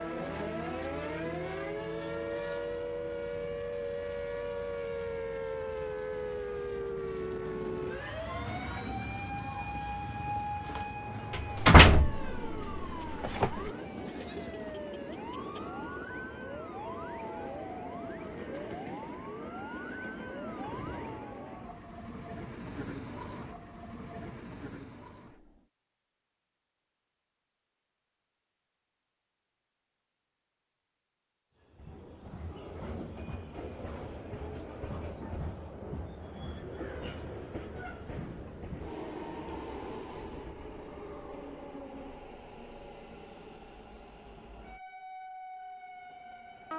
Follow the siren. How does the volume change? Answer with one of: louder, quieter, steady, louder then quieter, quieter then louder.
quieter.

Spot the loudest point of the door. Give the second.
12 s.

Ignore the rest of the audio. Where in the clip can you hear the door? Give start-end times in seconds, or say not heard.
11.3-13.7.